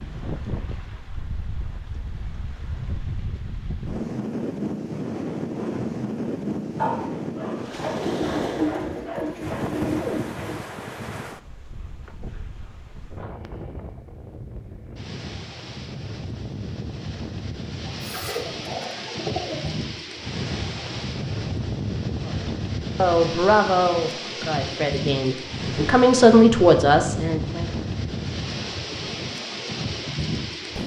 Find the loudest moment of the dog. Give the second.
7 s.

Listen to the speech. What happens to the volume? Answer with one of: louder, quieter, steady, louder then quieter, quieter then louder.
quieter then louder.